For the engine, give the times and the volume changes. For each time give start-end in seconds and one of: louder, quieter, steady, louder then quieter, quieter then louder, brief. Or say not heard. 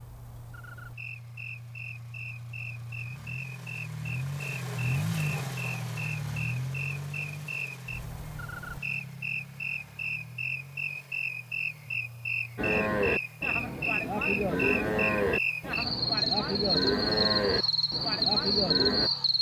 0.0-19.3 louder then quieter.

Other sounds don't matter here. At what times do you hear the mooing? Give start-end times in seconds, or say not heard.
12.6-19.1.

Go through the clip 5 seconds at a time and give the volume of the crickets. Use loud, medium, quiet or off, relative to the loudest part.
quiet, medium, medium, loud.